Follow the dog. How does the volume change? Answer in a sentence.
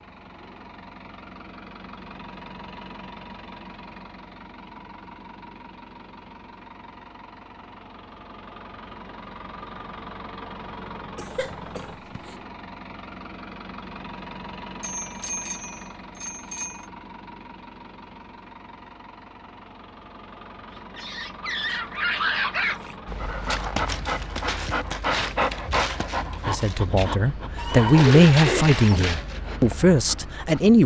The volume of the dog goes down.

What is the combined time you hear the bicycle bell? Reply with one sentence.
You can hear the bicycle bell for 2 seconds altogether.